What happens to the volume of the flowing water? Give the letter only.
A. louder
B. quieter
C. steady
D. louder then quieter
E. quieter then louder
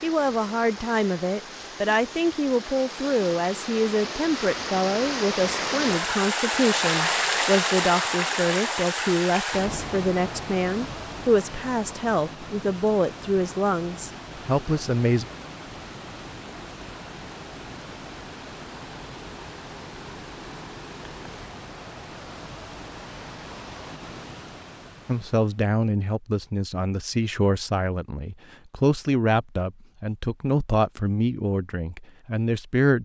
D.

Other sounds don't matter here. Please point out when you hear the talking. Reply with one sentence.
You can hear the talking from 0.0 to 15.2 s and from 25.1 to 32.9 s.